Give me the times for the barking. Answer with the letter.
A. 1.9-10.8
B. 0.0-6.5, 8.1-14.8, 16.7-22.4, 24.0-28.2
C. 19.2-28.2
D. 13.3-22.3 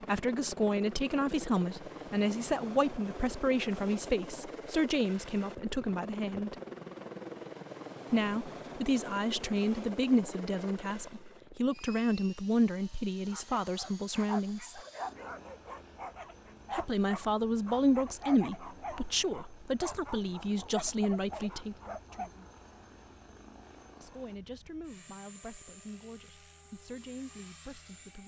D.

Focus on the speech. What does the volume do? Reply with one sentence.
The loudness of the speech goes down.